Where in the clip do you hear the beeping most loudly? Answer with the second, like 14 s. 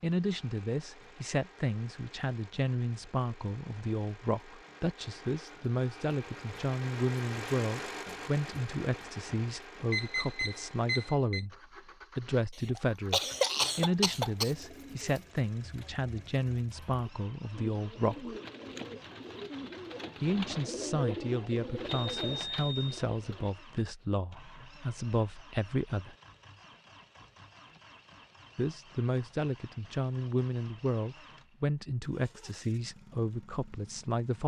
10 s.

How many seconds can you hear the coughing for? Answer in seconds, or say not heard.
2 s.